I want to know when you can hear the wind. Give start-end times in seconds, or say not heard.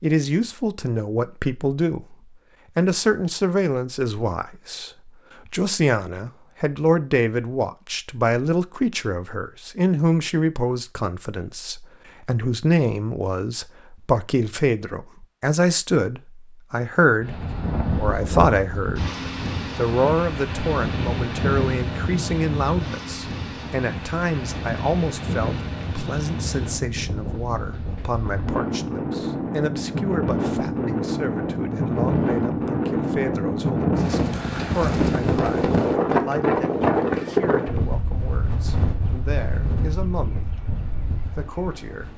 17.2-42.1.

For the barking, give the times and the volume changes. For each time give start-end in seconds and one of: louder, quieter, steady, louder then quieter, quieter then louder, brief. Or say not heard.
not heard.